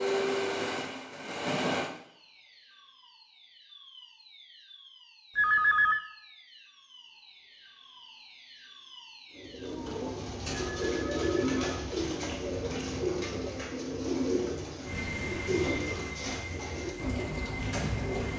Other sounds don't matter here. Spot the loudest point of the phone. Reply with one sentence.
The volume of the phone peaks at 6 seconds.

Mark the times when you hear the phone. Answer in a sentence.
You can hear the phone from 5.3 to 6.0 s and from 10.7 to 12.3 s.